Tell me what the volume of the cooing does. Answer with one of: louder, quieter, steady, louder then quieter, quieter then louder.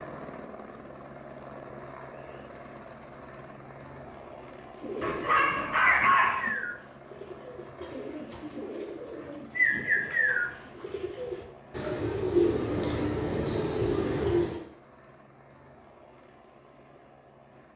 quieter then louder.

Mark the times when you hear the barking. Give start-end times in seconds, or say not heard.
5.0-6.5.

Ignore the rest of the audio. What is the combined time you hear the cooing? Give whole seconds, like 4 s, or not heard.
10 s.